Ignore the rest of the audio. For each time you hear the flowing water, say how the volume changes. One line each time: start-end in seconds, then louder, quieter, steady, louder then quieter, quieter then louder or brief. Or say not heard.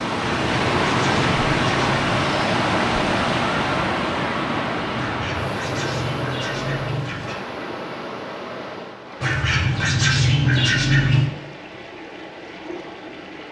0.0-13.4 quieter.